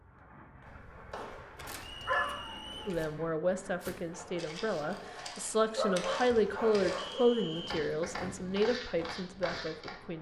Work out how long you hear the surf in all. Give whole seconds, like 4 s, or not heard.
not heard.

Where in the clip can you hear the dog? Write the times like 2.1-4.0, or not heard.
1.6-3.1, 5.3-7.2.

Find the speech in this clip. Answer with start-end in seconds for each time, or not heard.
2.9-10.1.